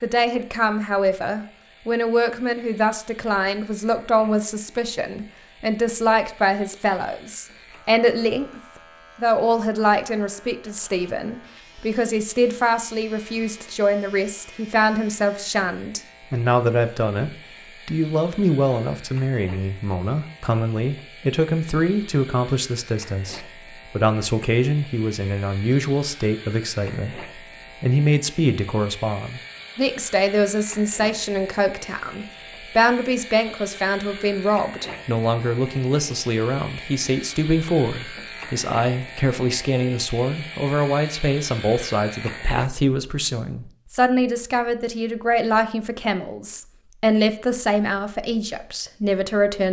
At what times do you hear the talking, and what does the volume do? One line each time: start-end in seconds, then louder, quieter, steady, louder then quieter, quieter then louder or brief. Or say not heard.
0.0-8.6 steady
9.2-49.6 steady.